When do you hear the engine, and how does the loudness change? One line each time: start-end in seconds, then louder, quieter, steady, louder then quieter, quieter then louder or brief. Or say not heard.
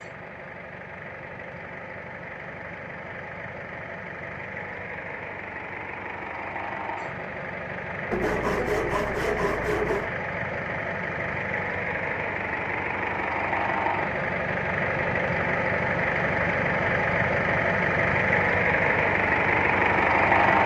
0.0-20.6 louder.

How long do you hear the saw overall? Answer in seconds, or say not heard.
2 s.